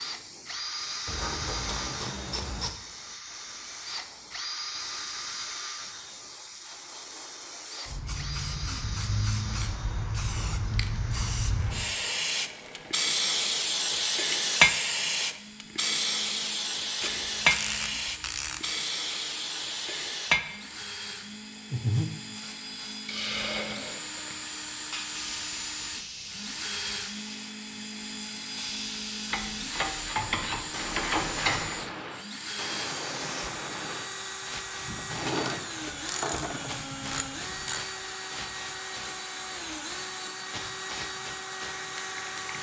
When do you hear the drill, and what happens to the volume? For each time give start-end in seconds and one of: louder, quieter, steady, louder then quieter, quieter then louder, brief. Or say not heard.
0.0-42.5 quieter then louder.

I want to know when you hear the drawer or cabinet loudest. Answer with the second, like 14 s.
35 s.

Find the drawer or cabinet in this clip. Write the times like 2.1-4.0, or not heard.
35.0-36.8.